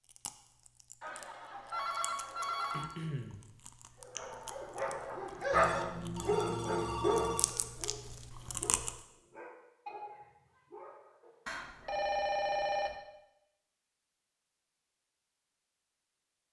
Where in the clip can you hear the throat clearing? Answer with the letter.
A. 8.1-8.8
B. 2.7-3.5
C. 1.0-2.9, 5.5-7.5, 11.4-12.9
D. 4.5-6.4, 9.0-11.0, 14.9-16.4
B.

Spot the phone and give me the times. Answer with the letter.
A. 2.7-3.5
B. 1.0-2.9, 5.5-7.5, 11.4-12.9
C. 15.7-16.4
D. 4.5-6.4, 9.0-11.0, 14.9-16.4
B.